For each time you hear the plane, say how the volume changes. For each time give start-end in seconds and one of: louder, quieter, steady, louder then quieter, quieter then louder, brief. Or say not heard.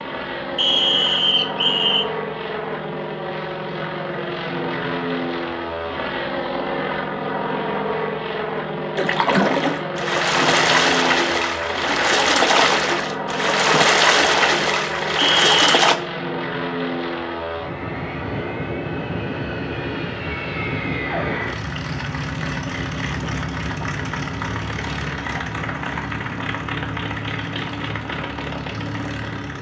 0.0-29.5 steady.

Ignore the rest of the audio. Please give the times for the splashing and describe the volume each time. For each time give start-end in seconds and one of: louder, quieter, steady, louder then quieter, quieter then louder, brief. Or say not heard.
8.9-15.9 steady.